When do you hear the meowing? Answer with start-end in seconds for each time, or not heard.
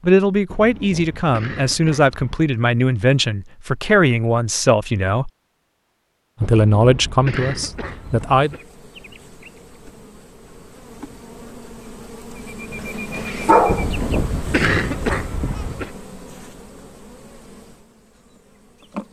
not heard.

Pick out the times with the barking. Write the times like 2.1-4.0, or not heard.
12.7-13.9.